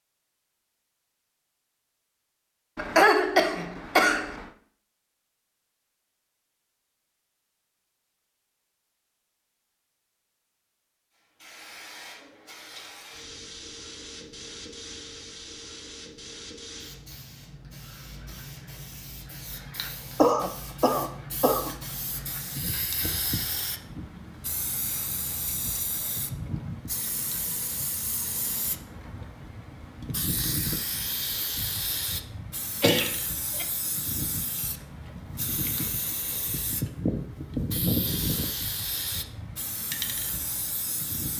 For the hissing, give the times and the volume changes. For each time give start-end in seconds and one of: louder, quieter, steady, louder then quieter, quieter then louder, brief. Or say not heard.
11.4-41.3 louder.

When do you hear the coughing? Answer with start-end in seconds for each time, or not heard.
2.8-4.5, 20.1-21.8, 32.8-33.6.